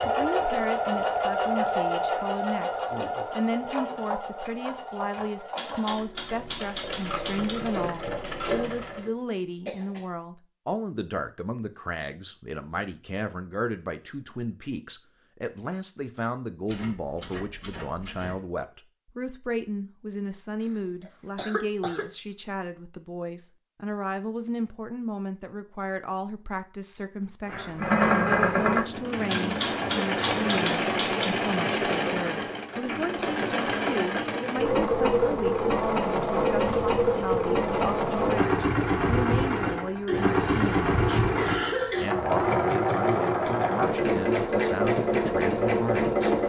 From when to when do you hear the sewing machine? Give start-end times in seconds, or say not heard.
0.0-9.1, 27.4-46.4.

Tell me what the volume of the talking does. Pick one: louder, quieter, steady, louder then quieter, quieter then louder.
steady.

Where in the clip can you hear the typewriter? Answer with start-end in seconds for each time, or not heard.
5.5-7.5, 16.6-18.4, 29.2-31.2, 36.5-38.2.